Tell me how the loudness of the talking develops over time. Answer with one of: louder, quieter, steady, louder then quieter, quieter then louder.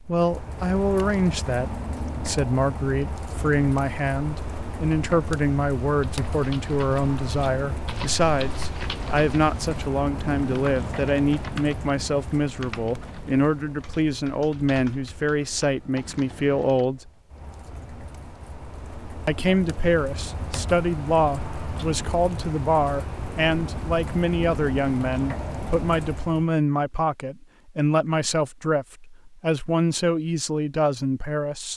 steady.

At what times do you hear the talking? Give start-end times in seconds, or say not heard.
0.1-17.1, 19.2-31.7.